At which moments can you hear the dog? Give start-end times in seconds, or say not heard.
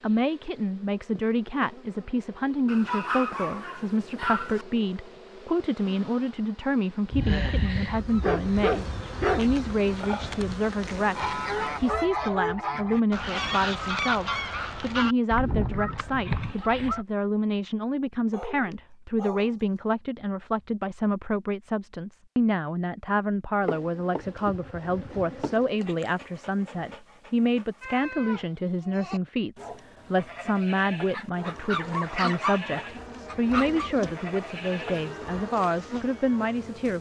2.6-4.7, 8.2-9.5, 18.3-19.6, 25.8-28.0, 31.1-33.9.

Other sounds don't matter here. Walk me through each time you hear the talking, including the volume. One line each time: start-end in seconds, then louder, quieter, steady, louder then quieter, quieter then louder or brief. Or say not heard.
0.0-36.9 steady.